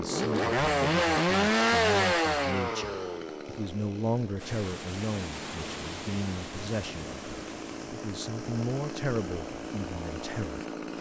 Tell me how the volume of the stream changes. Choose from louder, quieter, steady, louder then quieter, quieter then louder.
quieter.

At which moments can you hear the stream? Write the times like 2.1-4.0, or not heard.
4.3-10.9.